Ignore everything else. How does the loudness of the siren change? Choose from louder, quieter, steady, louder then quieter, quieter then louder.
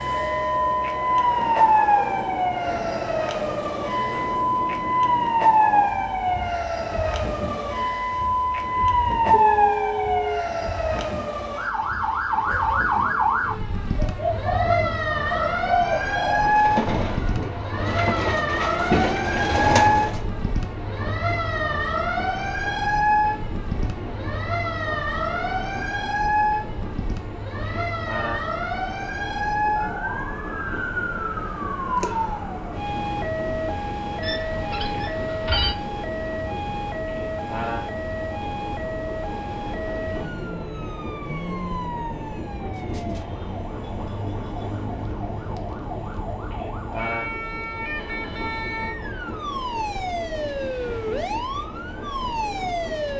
quieter.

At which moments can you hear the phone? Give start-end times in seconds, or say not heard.
9.3-10.4, 34.2-35.8.